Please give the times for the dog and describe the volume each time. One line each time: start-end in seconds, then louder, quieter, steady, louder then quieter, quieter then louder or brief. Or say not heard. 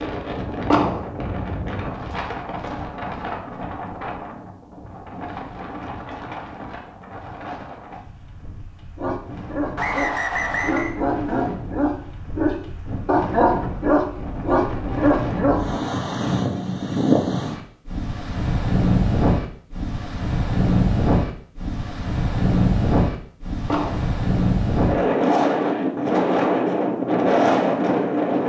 8.9-15.7 louder.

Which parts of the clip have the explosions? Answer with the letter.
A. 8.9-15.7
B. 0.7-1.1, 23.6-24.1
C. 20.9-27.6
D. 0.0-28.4
B.